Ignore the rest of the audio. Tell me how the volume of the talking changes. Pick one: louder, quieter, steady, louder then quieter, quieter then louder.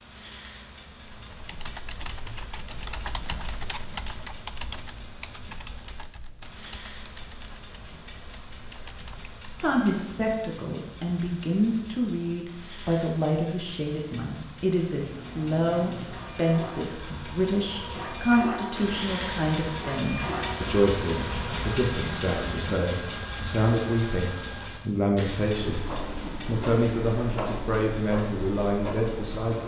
steady.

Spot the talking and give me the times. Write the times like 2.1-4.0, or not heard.
9.6-25.9, 26.4-29.6.